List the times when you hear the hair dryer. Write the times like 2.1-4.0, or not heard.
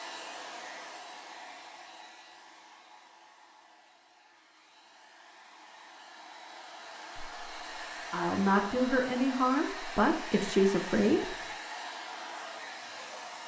0.0-13.4.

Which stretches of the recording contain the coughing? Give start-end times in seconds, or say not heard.
not heard.